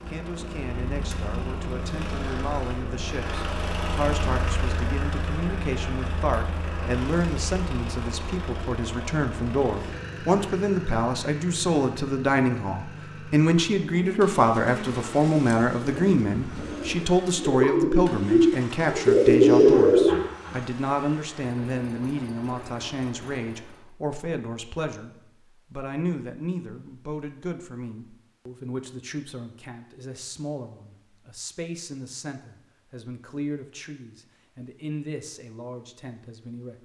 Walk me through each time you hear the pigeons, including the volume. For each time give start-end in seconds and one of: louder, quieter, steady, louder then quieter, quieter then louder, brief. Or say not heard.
13.8-20.6 louder.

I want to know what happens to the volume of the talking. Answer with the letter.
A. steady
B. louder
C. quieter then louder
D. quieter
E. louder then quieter
E.